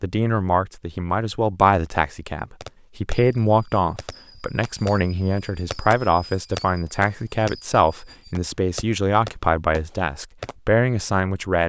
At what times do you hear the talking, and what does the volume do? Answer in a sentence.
The talking can be heard from 0.0 to 11.6 s, at a steady volume.